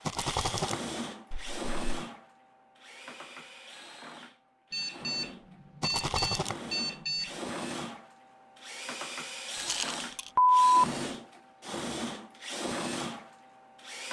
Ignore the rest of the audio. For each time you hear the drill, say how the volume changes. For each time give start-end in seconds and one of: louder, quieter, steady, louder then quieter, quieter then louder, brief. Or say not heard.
0.0-14.0 quieter then louder.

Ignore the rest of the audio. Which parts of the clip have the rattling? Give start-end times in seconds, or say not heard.
0.1-0.8, 5.8-6.5, 9.6-10.3.